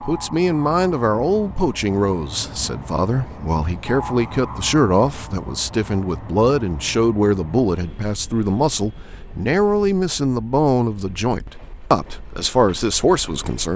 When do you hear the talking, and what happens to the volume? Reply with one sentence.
The talking can be heard from 0.0 to 13.7 s, at a steady volume.